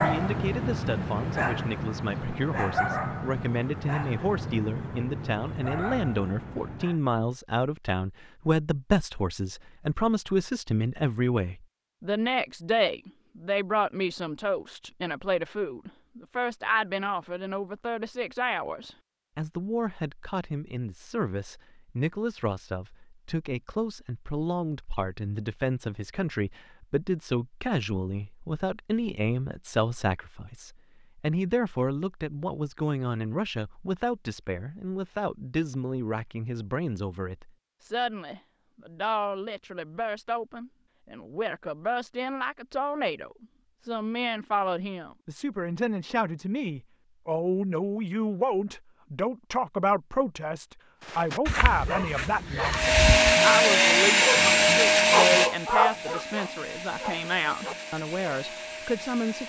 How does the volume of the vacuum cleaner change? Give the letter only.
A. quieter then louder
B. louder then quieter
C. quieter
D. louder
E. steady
C.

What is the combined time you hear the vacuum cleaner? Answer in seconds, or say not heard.
7 s.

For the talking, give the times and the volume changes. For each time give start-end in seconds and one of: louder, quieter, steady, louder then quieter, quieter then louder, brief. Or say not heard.
0.0-59.4 steady.